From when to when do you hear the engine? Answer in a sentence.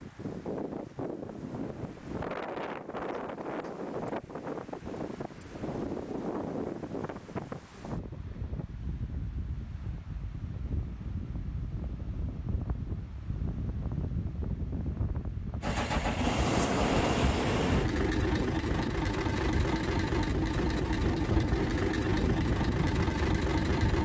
You can hear the engine from 15.6 to 24.0 s.